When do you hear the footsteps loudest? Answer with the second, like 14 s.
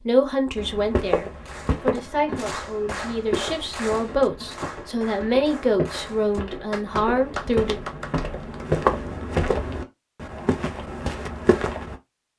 9 s.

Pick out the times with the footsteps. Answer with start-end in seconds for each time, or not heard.
0.6-11.9.